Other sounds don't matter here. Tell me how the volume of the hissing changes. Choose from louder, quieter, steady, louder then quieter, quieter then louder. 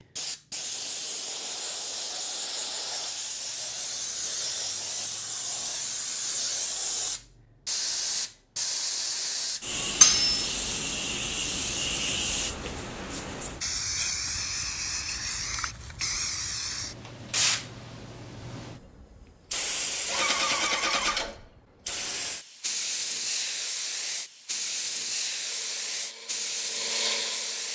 steady.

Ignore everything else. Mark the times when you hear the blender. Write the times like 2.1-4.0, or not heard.
25.4-27.7.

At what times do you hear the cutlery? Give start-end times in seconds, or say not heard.
10.0-10.5.